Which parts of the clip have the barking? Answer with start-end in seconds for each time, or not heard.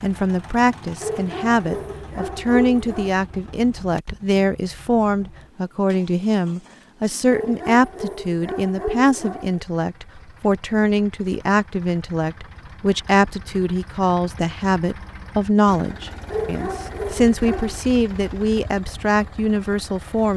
1.0-3.1, 7.3-9.7, 16.3-17.8.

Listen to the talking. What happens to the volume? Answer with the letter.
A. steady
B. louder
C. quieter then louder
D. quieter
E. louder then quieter
A.